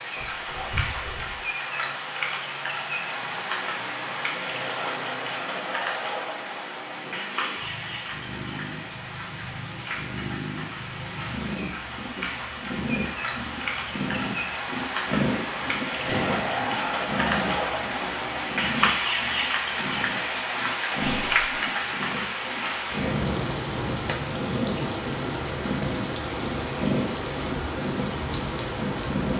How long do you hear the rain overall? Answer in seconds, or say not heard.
29 s.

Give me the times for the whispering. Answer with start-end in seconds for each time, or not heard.
0.1-1.4, 16.1-16.9, 21.0-21.5.